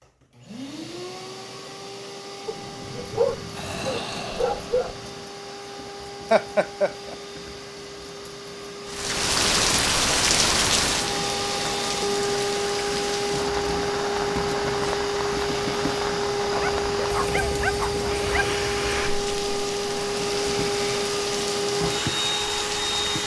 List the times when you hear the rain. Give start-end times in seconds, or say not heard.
8.8-23.2.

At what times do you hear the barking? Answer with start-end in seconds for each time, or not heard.
2.5-5.2, 16.6-18.6.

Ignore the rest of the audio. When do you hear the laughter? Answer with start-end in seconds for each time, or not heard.
6.3-7.2.